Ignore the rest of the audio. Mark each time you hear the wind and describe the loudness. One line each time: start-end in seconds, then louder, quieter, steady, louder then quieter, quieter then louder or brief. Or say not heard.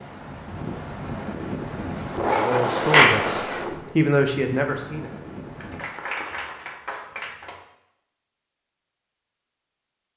0.0-5.8 louder then quieter.